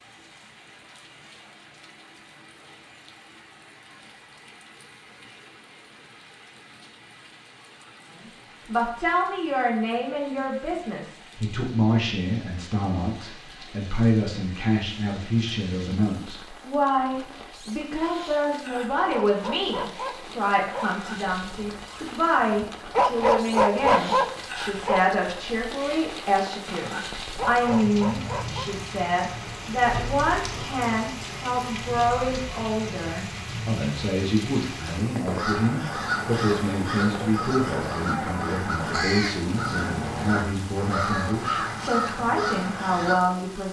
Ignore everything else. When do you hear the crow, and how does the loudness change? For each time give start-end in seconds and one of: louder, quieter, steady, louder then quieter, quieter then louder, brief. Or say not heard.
35.2-43.1 steady.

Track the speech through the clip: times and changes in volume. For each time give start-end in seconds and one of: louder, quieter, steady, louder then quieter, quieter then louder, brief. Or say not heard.
8.7-43.6 steady.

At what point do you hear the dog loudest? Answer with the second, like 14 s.
24 s.